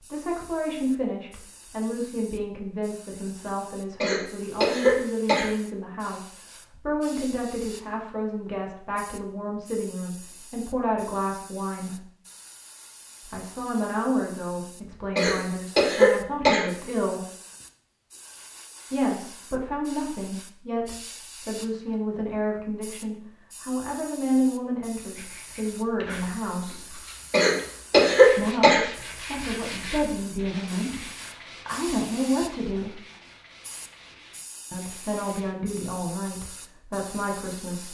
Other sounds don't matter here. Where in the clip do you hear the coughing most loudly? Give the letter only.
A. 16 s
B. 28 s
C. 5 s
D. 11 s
B.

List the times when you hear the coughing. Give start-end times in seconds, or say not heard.
4.0-5.5, 15.2-16.6, 27.3-28.9.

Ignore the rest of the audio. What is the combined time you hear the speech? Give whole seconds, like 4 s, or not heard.
32 s.